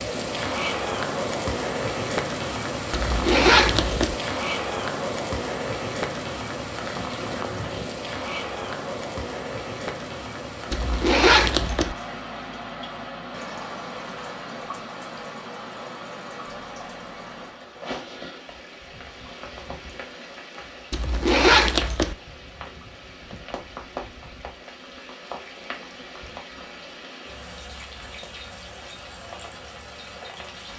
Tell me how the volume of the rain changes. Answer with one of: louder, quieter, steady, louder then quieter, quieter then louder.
quieter.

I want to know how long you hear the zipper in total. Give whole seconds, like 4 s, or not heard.
4 s.